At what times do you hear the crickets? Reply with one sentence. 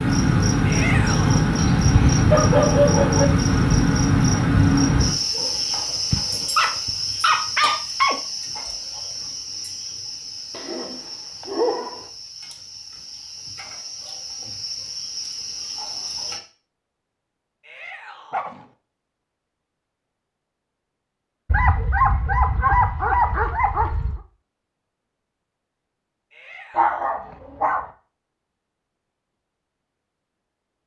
You can hear the crickets from 0.0 to 16.4 s.